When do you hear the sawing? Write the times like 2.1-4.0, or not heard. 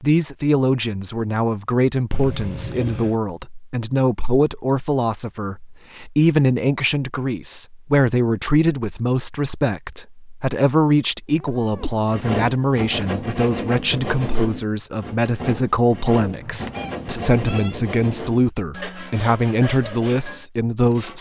11.8-21.1.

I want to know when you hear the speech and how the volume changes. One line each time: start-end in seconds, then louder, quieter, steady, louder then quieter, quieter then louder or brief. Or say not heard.
0.0-21.1 steady.